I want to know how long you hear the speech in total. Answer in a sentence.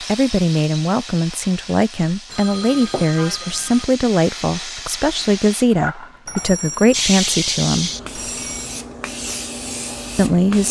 You can hear the speech for 8 seconds altogether.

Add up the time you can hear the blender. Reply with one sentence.
You can't hear the blender here.